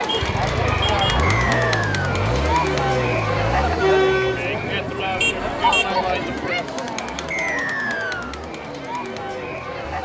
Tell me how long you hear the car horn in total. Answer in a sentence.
The car horn can be heard for 2 seconds in total.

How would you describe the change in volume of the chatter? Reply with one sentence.
The volume of the chatter goes down.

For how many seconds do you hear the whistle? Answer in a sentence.
You can hear the whistle for 2 seconds altogether.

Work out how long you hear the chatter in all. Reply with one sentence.
The chatter can be heard for 10 seconds in total.